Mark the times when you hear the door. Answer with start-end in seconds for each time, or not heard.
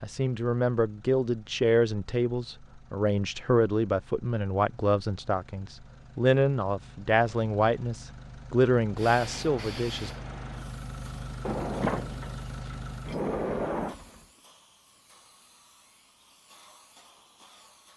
11.4-13.9.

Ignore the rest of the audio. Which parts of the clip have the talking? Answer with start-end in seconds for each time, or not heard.
0.0-10.1.